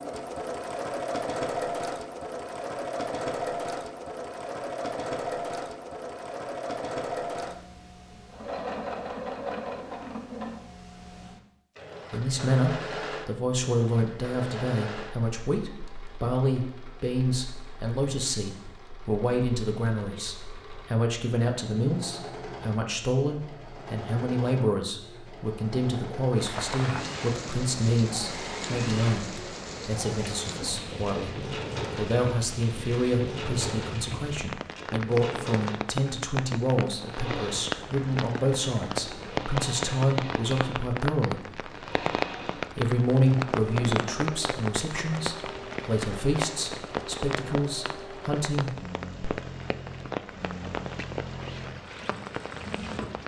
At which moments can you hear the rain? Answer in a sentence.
The rain can be heard from 26.4 to 53.2 s.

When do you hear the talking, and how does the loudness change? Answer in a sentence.
The talking can be heard from 12.1 to 41.6 s, at a steady volume; and from 42.8 to 48.8 s, getting quieter.